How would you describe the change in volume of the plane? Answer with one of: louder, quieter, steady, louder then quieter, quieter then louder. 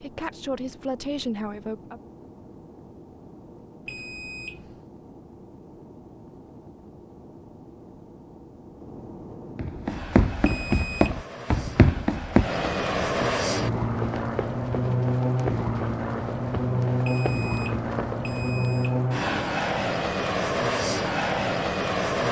louder.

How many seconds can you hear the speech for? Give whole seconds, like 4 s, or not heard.
2 s.